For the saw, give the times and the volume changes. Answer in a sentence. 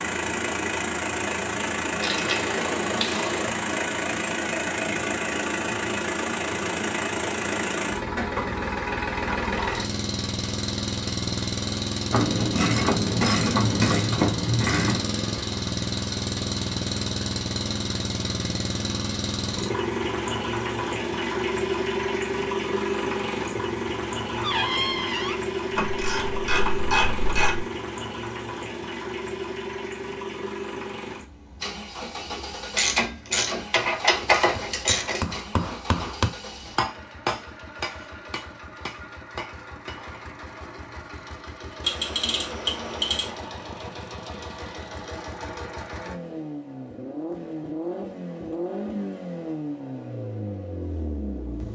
The saw can't be heard in this clip.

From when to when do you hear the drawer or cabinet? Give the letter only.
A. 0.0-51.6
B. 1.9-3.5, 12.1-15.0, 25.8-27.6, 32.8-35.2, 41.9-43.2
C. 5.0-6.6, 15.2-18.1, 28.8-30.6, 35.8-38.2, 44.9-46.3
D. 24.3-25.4
D.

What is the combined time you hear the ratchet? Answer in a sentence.
The ratchet can be heard for 10 seconds in total.